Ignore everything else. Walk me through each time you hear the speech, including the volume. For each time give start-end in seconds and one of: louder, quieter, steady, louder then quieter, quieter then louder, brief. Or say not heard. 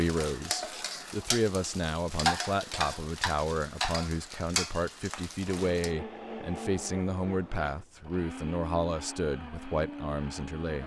0.0-10.8 steady.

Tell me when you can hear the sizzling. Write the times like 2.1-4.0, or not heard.
0.0-5.9.